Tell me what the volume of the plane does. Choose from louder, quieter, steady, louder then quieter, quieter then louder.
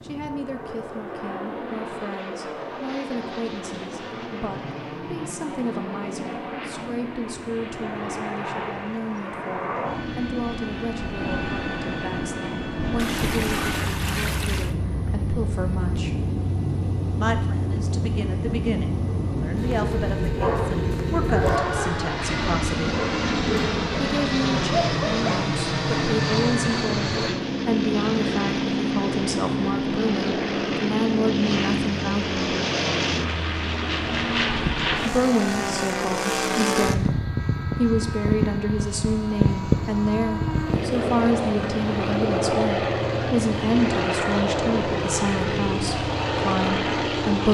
louder.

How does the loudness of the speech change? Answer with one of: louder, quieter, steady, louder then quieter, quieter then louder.
louder.